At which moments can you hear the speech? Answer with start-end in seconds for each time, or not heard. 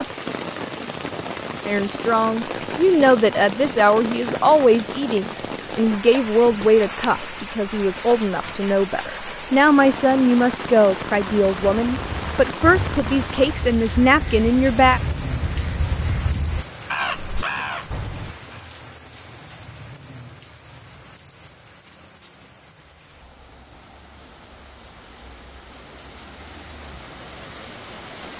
1.6-15.0.